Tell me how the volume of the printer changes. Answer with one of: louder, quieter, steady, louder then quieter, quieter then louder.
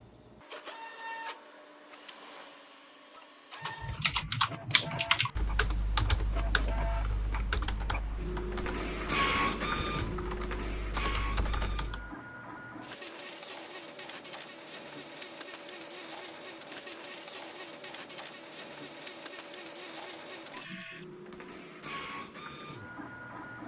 louder then quieter.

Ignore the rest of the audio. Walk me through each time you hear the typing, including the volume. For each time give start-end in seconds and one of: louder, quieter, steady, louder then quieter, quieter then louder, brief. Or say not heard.
3.6-12.1 quieter then louder.